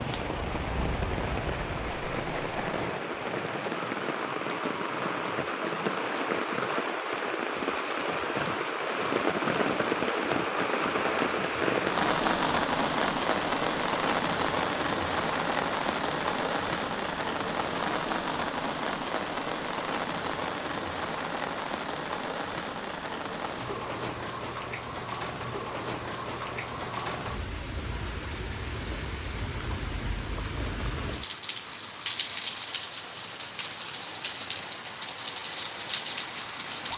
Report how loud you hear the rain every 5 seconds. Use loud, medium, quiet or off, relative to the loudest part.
medium, loud, loud, loud, medium, medium, medium, medium.